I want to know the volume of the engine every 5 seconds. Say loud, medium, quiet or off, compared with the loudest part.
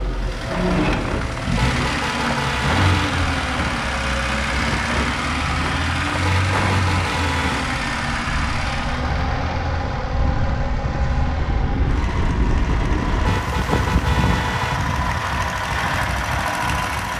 loud, loud, medium, loud.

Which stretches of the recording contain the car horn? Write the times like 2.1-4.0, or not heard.
1.6-3.1, 6.2-7.7, 13.2-14.8.